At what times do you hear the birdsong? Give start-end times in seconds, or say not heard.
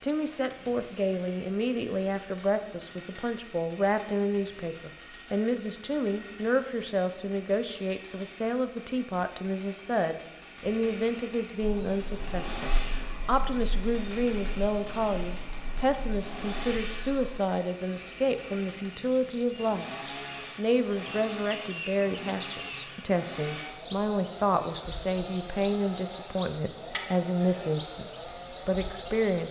11.6-17.4, 18.1-29.4.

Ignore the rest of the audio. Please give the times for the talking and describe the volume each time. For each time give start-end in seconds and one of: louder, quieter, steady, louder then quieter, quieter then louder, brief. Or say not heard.
0.0-19.9 steady
20.6-29.4 steady.